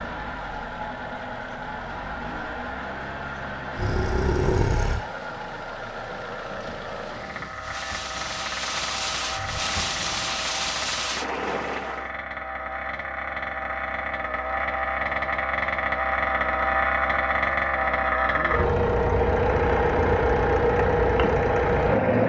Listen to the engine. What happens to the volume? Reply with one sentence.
The volume of the engine goes up.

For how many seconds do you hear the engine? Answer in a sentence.
The engine can be heard for 22 seconds in total.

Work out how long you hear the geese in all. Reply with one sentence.
You can't hear the geese here.